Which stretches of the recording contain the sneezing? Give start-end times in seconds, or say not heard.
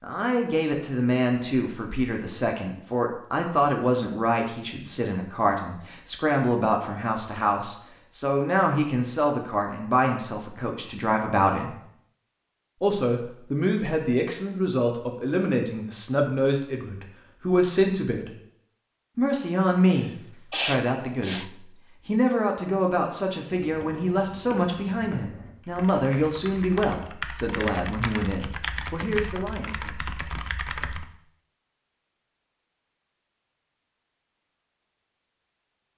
19.9-21.5.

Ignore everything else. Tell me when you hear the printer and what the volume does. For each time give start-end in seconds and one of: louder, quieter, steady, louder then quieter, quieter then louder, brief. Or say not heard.
not heard.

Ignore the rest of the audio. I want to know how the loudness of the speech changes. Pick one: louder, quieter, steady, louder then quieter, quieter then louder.
steady.